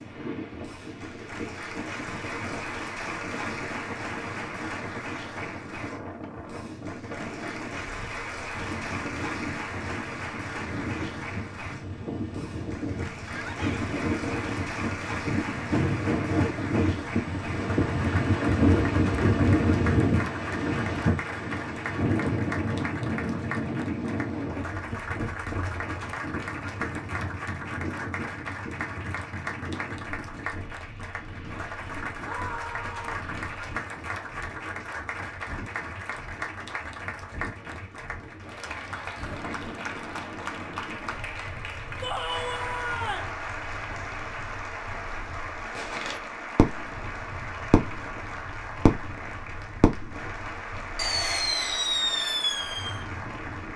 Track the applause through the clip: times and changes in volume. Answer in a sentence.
You can hear the applause from 0.0 to 53.7 s, at a steady volume.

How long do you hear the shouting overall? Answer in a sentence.
The shouting can be heard for 3 seconds in total.